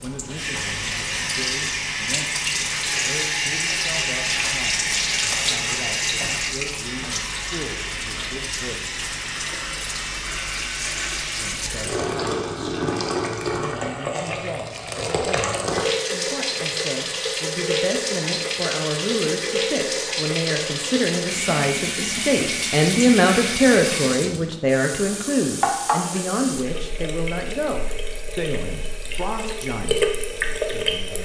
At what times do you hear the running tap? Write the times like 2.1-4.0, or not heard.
0.0-31.2.